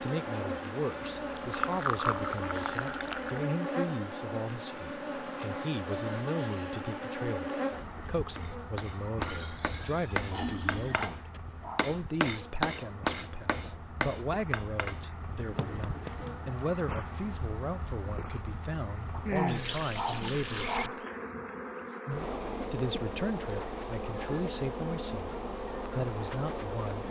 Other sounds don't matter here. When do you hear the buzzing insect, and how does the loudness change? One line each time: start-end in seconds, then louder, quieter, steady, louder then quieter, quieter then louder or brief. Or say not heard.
0.0-27.0 quieter then louder.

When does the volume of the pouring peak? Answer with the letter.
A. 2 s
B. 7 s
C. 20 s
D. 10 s
A.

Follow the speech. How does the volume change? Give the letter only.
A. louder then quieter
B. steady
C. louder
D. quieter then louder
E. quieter
B.